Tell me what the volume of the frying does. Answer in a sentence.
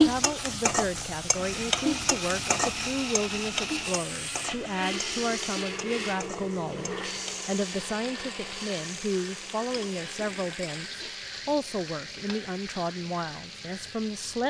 The loudness of the frying goes down.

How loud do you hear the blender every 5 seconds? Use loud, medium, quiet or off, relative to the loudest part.
loud, loud, medium.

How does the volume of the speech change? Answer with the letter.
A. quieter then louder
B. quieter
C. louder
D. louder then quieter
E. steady
E.